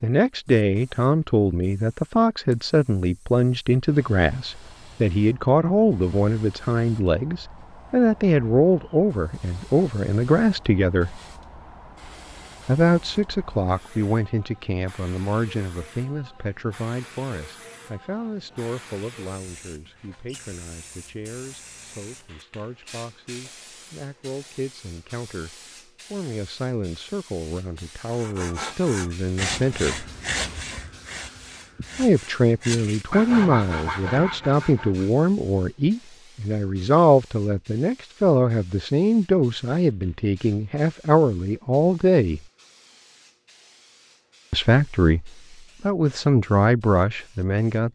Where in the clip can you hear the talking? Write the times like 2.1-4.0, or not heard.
0.0-11.2, 12.7-30.1, 31.9-42.4, 44.5-47.8.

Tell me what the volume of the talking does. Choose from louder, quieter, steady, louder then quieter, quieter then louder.
quieter then louder.